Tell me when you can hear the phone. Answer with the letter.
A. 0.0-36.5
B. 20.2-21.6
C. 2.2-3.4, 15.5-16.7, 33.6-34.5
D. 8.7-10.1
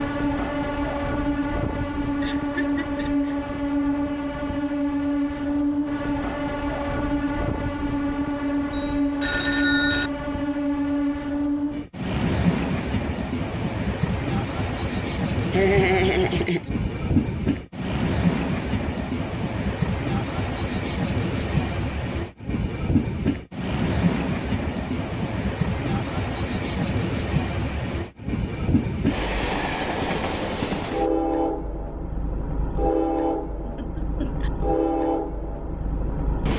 D.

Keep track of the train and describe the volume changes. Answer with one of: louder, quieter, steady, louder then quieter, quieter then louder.
steady.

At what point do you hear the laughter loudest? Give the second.
16 s.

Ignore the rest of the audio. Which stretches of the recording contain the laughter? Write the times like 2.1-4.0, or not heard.
2.2-3.4, 15.5-16.7, 33.6-34.5.